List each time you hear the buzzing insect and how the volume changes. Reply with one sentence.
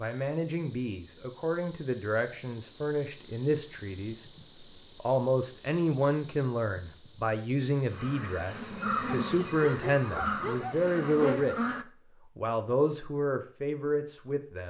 You can hear the buzzing insect from 0.0 to 11.8 s, getting louder.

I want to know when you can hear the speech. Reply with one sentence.
The speech can be heard from 0.0 to 4.2 s, from 5.0 to 11.8 s and from 12.3 to 14.6 s.